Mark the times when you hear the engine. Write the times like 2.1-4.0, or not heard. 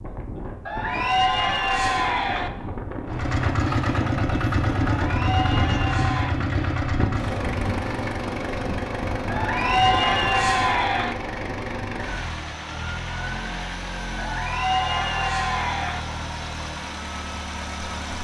3.0-18.1.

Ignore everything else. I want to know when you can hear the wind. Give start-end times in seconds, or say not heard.
0.0-10.8.